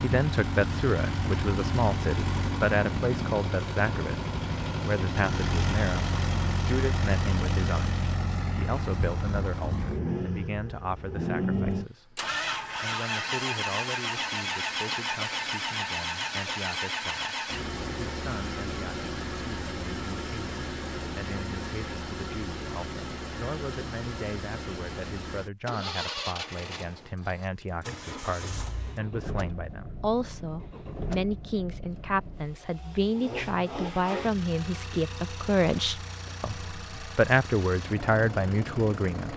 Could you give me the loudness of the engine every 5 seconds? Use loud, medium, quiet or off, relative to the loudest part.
loud, loud, loud, loud, medium, medium, medium, medium.